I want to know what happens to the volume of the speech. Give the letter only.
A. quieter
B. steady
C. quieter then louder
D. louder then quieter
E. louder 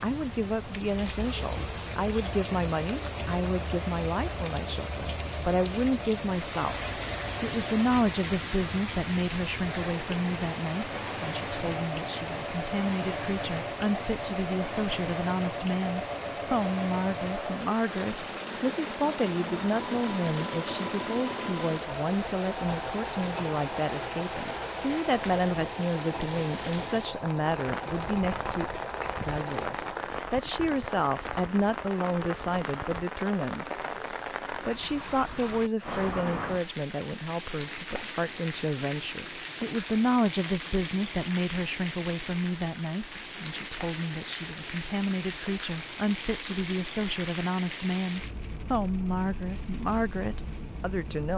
B.